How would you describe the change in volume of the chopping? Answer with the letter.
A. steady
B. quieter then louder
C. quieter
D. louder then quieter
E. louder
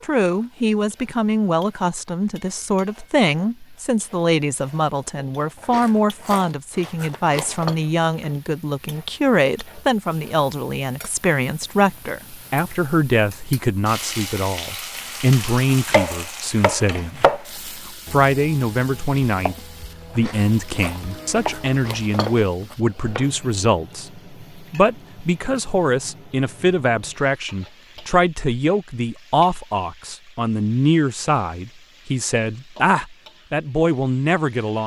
B.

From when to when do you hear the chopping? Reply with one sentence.
The chopping can be heard from 15.8 to 23.3 s.